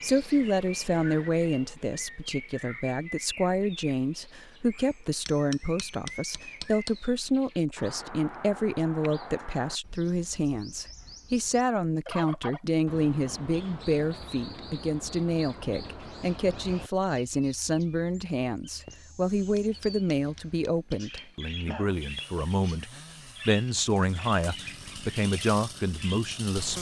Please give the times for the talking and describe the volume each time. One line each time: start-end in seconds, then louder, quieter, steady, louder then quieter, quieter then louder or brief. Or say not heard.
0.0-26.7 steady.